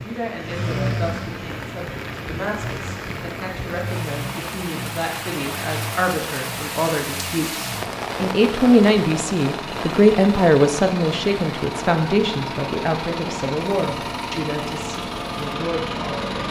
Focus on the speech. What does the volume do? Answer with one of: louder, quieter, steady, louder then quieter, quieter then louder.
louder then quieter.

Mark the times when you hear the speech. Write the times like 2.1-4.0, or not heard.
0.0-16.4.